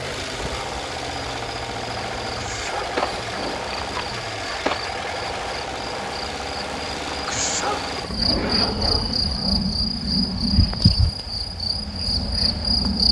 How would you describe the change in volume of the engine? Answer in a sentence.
The loudness of the engine goes down.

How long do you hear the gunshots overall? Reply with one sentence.
The gunshots can be heard for 2 seconds in total.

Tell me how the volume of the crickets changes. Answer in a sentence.
The loudness of the crickets goes up.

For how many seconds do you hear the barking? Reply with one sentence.
You can hear the barking for 4 seconds altogether.